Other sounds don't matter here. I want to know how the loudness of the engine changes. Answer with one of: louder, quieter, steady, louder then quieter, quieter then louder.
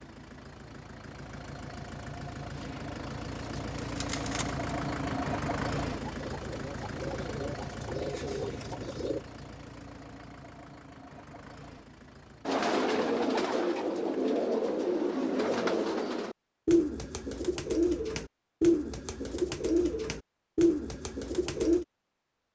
louder then quieter.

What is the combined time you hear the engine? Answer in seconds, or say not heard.
13 s.